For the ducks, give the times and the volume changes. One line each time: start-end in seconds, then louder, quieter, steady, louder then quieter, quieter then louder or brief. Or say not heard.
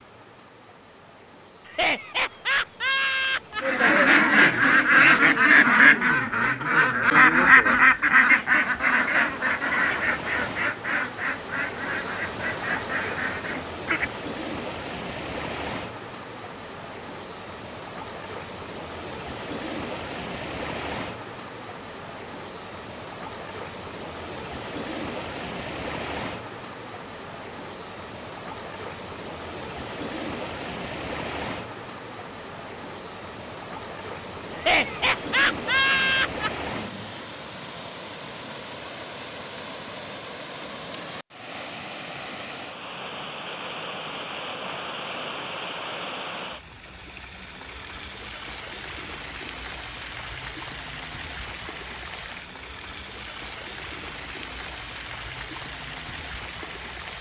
3.6-14.2 quieter.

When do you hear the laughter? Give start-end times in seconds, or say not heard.
1.6-3.6, 34.5-36.5.